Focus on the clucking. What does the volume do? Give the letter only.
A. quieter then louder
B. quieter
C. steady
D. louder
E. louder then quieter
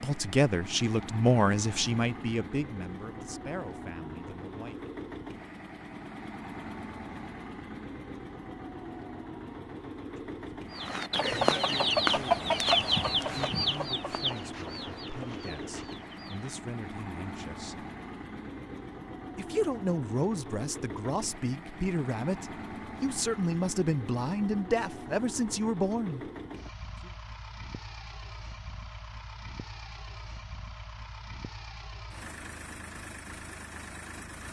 B.